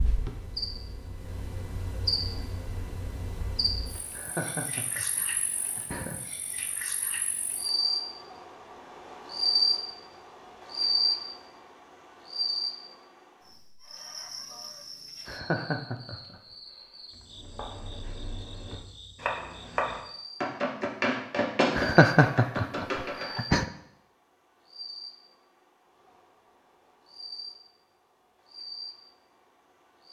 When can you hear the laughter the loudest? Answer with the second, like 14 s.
22 s.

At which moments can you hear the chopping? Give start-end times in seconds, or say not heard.
17.3-23.4.